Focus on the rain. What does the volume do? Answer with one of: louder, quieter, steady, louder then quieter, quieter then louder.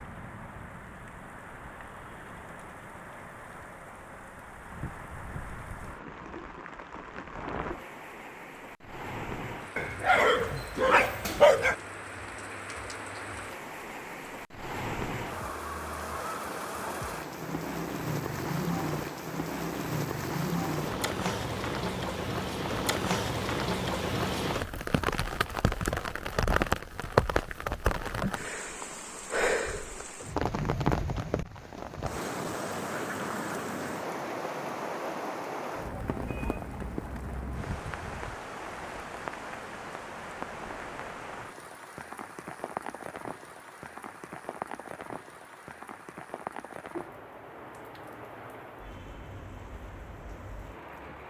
louder then quieter.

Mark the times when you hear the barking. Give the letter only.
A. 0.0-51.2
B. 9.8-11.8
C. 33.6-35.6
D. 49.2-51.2
B.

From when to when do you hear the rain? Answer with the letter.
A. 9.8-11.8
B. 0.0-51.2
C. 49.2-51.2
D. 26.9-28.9
B.